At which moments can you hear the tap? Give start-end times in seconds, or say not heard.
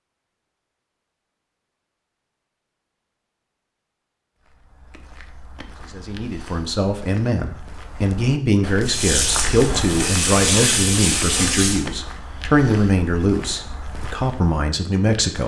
8.8-11.8.